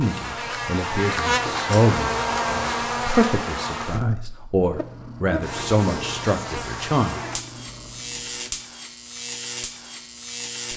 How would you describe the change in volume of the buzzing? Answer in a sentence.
The loudness of the buzzing goes down.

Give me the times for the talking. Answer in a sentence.
The talking can be heard from 0.0 to 7.2 s.